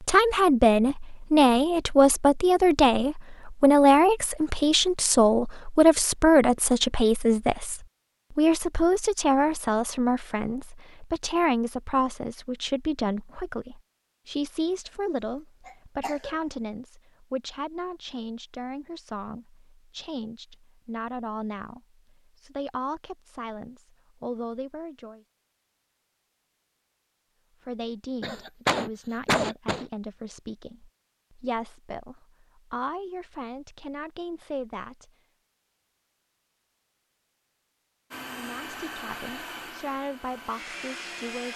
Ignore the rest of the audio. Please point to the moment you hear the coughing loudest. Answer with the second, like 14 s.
29 s.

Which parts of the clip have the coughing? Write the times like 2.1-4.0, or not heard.
15.7-16.4, 28.2-29.9.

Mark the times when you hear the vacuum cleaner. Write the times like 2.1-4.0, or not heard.
38.1-41.5.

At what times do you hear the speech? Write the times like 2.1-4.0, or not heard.
0.0-25.2, 27.6-35.1, 38.2-41.5.